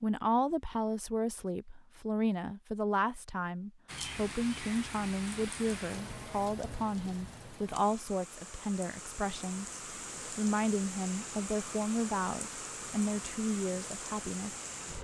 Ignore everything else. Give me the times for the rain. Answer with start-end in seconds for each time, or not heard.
3.9-14.9.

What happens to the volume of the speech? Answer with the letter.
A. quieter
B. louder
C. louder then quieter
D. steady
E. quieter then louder
D.